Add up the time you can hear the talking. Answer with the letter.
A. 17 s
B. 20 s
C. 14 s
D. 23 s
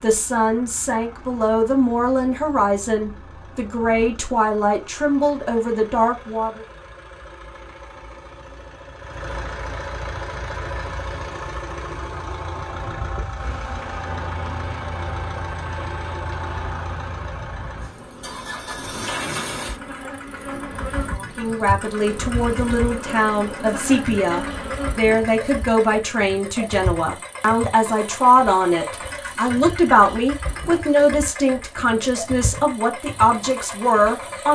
B.